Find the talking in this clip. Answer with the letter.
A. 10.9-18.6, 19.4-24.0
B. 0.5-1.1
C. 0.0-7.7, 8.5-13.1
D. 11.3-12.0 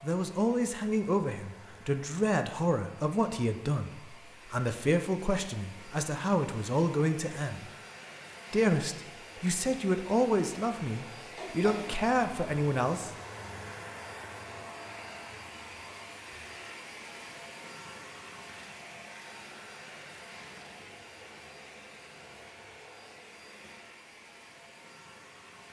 C.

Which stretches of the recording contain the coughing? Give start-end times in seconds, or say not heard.
11.3-12.0.